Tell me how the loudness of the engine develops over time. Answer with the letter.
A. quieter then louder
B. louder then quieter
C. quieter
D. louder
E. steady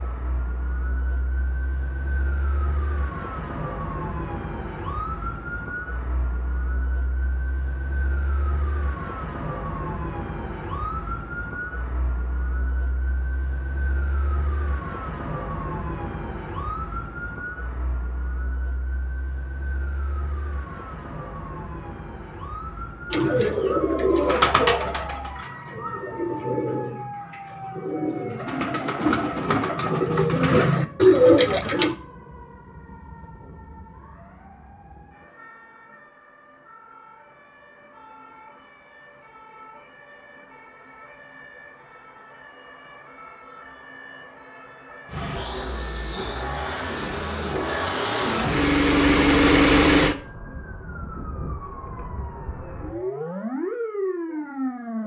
D.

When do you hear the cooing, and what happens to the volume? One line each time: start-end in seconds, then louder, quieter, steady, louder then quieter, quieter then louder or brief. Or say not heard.
23.1-31.9 quieter then louder.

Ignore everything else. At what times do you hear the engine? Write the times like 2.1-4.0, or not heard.
45.0-50.1.